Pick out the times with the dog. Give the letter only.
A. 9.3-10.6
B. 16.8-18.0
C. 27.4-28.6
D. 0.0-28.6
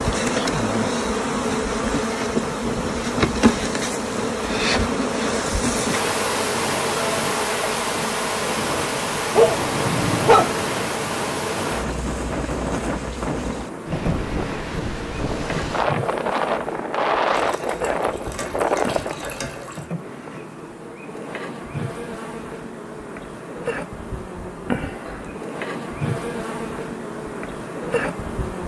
A.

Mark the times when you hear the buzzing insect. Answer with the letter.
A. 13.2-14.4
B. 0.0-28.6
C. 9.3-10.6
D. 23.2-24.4
B.